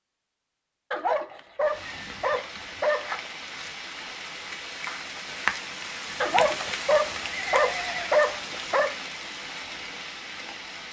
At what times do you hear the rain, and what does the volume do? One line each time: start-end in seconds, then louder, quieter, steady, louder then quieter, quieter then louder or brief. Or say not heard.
1.6-10.8 louder then quieter.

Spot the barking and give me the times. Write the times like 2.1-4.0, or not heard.
0.9-3.1, 6.2-8.9.